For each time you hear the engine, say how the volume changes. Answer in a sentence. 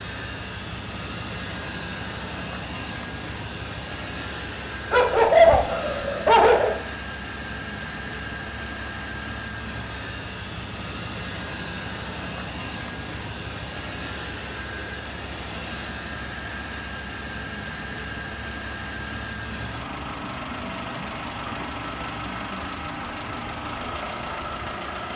You can hear the engine from 0.0 to 25.1 s, at a steady volume.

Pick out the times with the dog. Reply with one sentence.
You can hear the dog from 4.9 to 6.8 s.